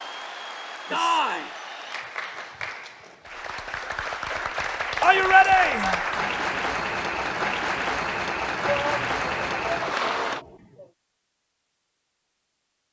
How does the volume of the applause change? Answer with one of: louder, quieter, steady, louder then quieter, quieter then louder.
louder.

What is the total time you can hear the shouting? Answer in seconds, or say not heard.
4 s.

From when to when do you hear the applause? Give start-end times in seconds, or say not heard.
0.0-10.4.